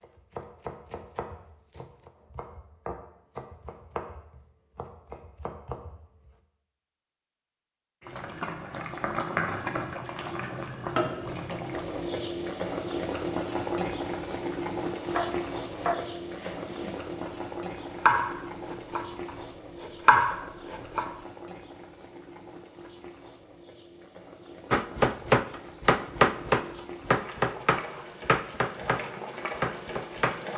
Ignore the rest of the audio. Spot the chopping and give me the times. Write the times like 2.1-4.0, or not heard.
0.0-6.3, 14.9-21.1, 24.7-30.4.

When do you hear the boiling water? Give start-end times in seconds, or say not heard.
8.0-30.5.